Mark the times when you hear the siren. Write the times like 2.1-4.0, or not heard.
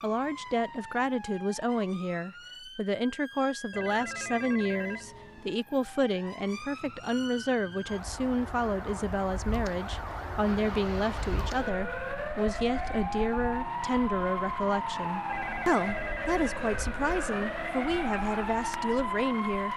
0.0-19.7.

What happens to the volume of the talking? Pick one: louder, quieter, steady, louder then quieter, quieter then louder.
steady.